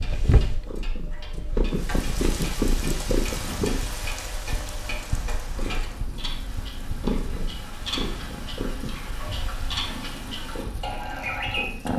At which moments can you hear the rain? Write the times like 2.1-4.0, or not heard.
1.6-11.9.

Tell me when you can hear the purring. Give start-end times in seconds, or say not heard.
0.0-11.9.